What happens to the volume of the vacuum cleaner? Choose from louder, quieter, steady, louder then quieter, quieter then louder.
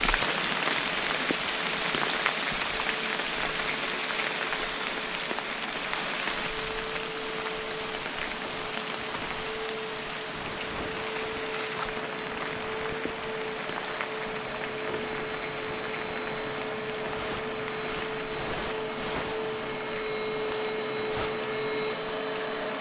louder.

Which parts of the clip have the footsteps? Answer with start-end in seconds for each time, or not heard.
not heard.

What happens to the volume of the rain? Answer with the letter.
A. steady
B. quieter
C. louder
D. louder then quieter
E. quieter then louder
B.